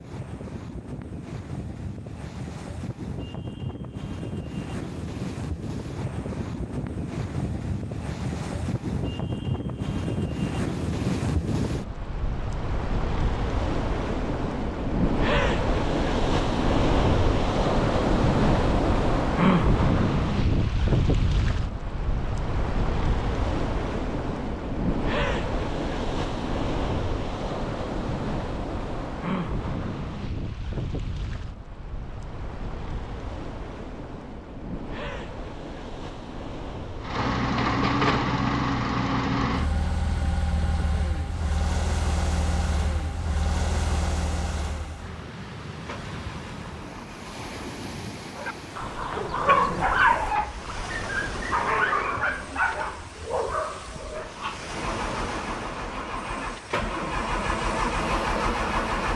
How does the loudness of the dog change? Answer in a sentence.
The loudness of the dog goes down.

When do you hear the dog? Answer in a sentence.
You can hear the dog from 48.3 to 54.6 s.